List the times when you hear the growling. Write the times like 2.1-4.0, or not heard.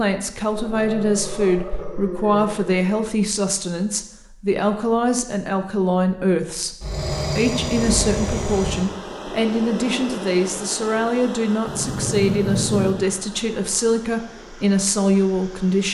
0.5-3.0, 6.8-8.9, 11.7-12.9.